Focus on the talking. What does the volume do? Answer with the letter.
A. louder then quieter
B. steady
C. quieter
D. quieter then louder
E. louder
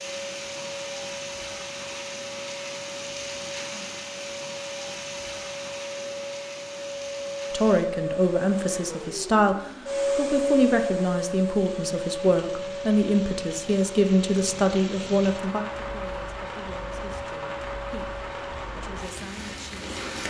C.